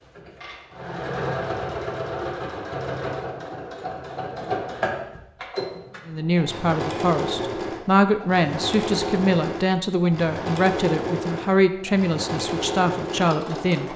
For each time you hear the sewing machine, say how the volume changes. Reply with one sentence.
You can hear the sewing machine from 0.0 to 13.9 s, at a steady volume.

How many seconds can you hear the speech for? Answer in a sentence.
You can hear the speech for 8 seconds altogether.